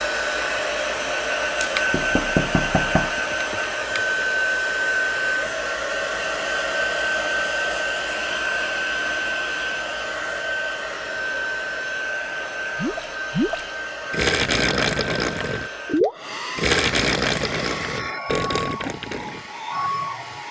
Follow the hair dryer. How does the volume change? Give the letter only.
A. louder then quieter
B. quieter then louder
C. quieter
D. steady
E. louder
C.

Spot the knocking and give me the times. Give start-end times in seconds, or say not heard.
1.6-3.2.